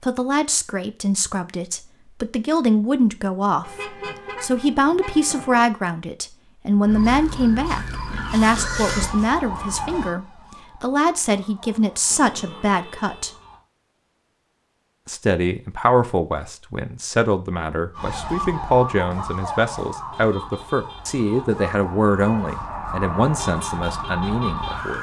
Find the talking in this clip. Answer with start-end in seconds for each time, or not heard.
0.0-13.3, 15.1-24.9.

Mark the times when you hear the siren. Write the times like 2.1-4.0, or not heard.
6.8-13.7, 17.9-24.9.